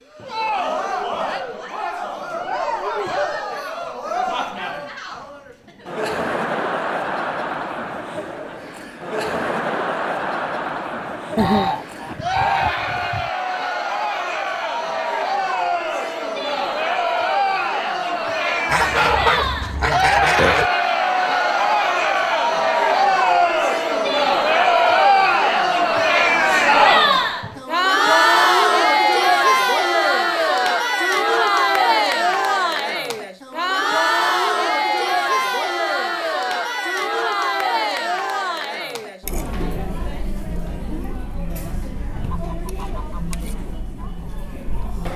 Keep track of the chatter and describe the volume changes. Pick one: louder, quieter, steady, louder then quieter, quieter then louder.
louder then quieter.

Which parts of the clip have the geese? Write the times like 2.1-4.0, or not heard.
11.3-13.3, 18.6-20.7, 41.6-43.4.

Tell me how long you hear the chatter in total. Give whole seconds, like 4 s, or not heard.
45 s.